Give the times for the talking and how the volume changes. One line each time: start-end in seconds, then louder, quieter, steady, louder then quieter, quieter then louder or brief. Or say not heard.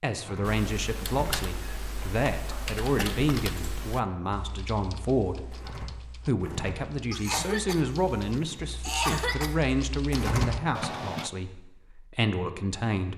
0.0-13.1 steady.